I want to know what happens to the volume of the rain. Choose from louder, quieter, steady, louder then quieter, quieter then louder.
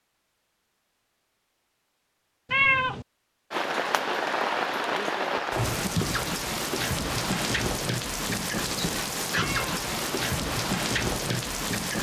steady.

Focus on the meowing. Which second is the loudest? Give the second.
3 s.